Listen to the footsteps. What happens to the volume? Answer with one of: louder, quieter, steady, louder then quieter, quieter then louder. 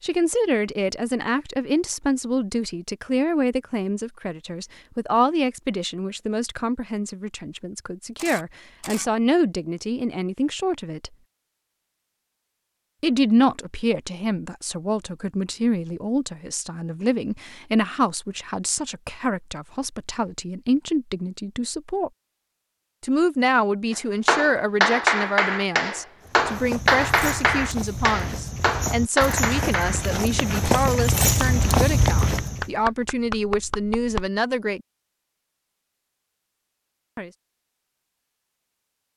louder.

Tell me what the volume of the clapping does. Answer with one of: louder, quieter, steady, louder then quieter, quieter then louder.
quieter.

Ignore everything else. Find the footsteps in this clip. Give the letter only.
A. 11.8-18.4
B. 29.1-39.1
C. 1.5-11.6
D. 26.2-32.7
D.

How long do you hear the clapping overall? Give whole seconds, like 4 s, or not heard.
10 s.